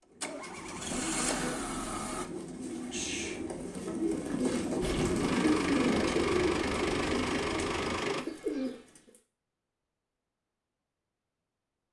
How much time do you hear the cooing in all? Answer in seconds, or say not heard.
9 s.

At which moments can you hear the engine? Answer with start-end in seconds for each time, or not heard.
0.2-2.2, 4.8-8.2.